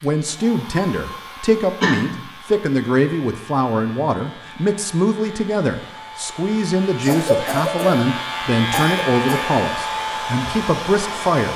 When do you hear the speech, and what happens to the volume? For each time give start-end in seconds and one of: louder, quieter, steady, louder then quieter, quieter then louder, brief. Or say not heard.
0.0-11.5 steady.